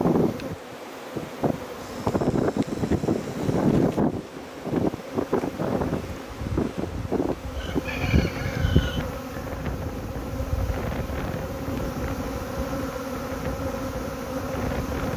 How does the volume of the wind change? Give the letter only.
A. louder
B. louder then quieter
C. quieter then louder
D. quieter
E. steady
D.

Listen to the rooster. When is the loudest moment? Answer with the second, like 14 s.
9 s.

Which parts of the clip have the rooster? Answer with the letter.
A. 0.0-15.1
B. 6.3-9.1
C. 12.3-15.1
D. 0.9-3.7
B.